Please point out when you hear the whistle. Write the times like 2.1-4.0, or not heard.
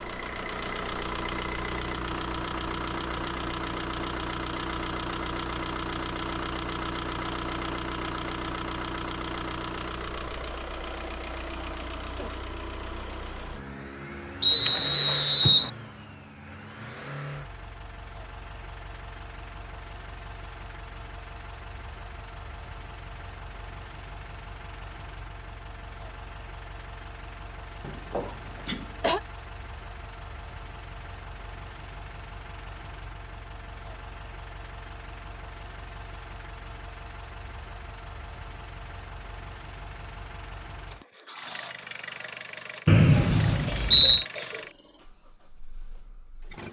14.4-15.7, 42.9-44.2.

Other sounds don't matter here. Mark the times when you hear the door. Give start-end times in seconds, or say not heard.
not heard.